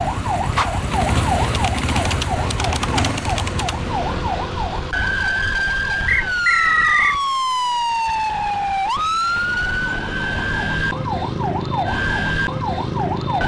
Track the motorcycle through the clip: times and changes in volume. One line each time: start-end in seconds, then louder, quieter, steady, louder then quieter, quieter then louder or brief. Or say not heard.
0.0-5.3 quieter.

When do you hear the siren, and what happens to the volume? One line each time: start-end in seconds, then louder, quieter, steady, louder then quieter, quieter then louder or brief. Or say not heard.
0.0-13.4 steady.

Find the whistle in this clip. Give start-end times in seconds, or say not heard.
6.0-7.2.